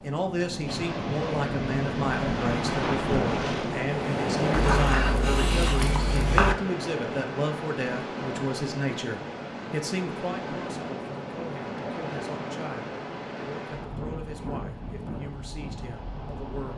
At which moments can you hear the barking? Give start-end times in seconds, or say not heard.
4.5-6.5.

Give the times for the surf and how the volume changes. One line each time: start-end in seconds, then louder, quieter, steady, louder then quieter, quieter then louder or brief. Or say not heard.
0.0-16.7 quieter.